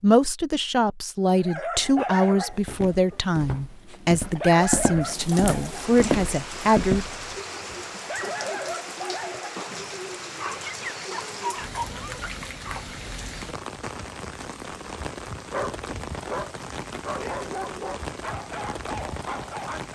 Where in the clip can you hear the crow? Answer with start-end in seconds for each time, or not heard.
not heard.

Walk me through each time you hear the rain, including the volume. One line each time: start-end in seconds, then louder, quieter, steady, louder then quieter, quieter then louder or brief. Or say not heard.
5.0-19.8 steady.